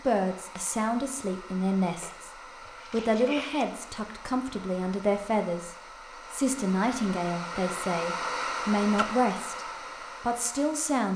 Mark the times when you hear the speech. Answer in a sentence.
You can hear the speech from 0.0 to 2.3 s and from 2.9 to 11.1 s.